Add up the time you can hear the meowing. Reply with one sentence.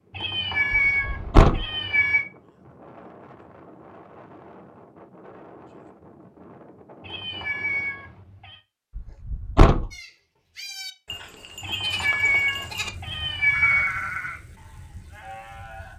The meowing can be heard for 6 seconds in total.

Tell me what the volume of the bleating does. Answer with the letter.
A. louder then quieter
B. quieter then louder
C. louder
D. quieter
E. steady
A.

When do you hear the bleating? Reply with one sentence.
The bleating can be heard from 9.9 to 15.9 s.